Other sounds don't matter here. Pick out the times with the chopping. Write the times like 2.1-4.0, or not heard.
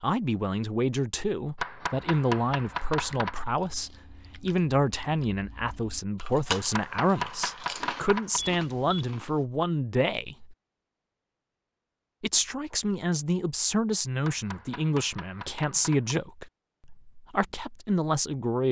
1.6-3.4, 6.5-8.4, 14.2-16.1.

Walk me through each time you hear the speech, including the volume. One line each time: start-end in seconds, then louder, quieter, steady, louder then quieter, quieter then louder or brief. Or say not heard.
0.0-10.6 steady
12.2-18.6 steady.